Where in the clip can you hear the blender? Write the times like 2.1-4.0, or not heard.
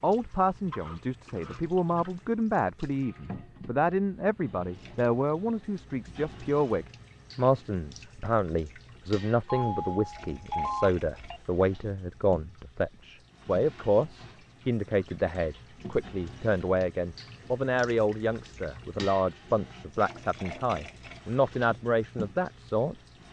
not heard.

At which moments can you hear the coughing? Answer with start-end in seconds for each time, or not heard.
not heard.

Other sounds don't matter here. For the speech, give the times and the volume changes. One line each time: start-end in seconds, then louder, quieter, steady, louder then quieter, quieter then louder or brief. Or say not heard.
0.0-22.9 steady.